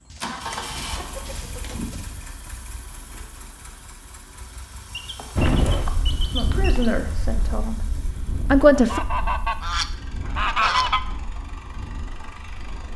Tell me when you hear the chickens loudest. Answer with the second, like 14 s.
11 s.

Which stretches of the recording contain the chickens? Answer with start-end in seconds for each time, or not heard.
0.1-2.1, 4.9-6.9, 8.8-11.0.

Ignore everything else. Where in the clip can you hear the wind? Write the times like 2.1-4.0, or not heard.
5.3-12.9.